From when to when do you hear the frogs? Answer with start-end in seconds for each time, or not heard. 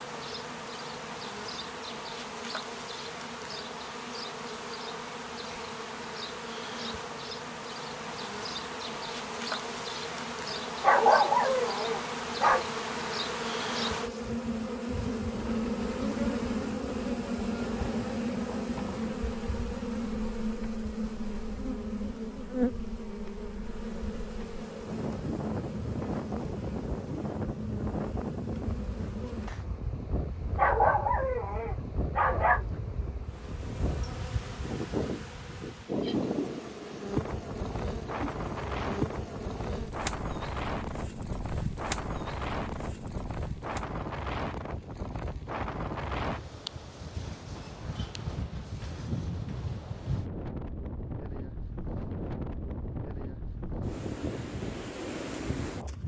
not heard.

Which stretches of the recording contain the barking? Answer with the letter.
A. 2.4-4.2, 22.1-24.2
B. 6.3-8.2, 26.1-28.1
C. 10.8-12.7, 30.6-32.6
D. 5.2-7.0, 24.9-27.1
C.